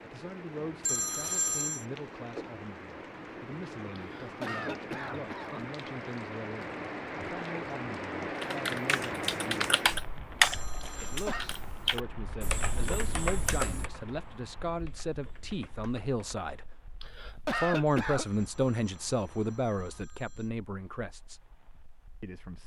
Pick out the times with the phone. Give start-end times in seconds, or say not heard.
0.8-1.9, 10.4-11.3, 17.9-20.5.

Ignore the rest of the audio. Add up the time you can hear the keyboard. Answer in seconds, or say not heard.
8 s.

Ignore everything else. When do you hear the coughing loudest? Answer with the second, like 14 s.
18 s.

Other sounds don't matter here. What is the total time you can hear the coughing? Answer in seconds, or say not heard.
4 s.